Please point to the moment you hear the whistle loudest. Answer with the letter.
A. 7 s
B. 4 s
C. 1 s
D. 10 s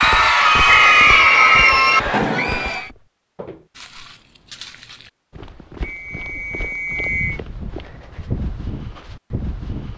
C.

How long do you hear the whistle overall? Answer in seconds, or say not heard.
3 s.